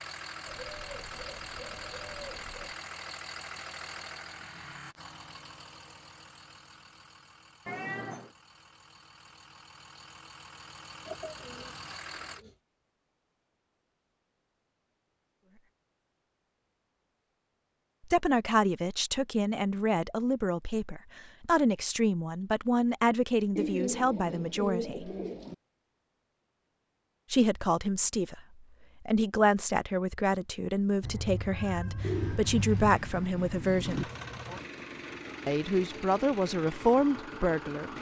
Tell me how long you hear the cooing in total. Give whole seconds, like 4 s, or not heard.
8 s.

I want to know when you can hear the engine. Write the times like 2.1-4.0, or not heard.
0.0-12.4, 33.8-37.9.